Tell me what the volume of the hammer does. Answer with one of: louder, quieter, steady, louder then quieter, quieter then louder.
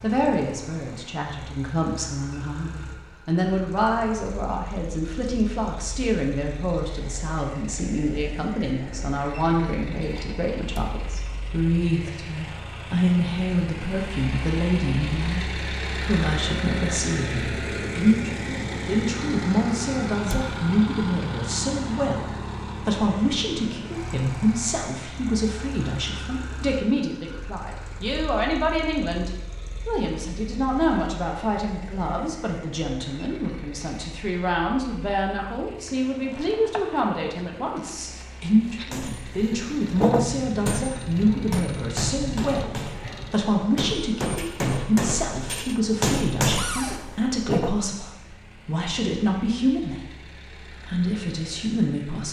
quieter then louder.